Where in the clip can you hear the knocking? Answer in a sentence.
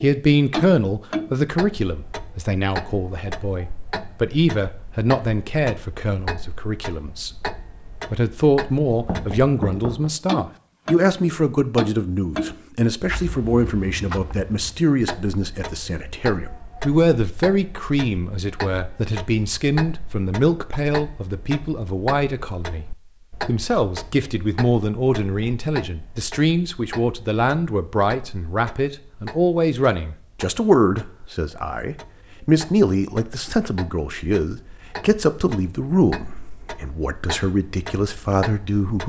You can hear the knocking from 8.9 to 10.1 s.